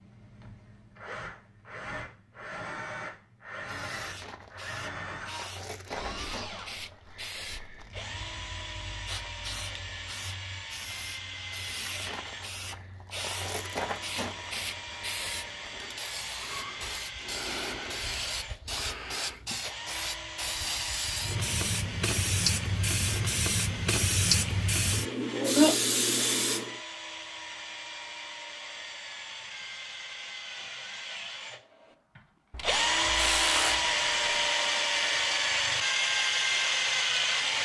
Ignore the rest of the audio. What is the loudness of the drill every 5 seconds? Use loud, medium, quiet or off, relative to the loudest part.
quiet, quiet, quiet, quiet, quiet, quiet, loud, loud.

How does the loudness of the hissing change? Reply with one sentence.
The volume of the hissing goes up.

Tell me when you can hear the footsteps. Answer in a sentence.
You can't hear the footsteps here.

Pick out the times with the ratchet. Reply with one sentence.
You can hear the ratchet from 32.5 to 34.5 s.